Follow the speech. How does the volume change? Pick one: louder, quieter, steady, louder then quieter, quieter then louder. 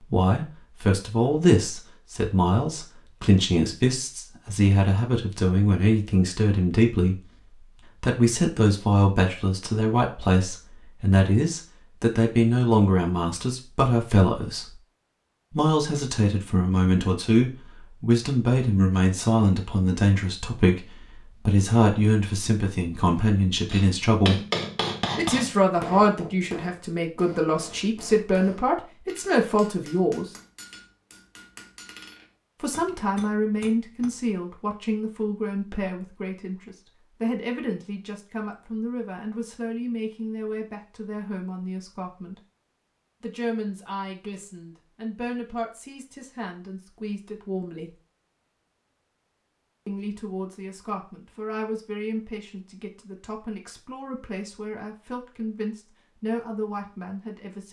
quieter.